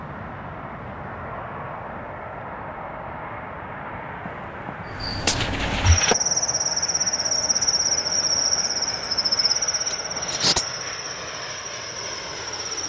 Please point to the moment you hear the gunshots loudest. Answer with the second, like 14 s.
6 s.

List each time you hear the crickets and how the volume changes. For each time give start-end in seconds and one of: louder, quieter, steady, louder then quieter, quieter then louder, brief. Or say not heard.
4.9-12.8 quieter.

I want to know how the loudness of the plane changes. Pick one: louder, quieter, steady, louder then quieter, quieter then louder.
steady.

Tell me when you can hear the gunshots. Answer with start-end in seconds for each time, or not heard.
4.2-6.2.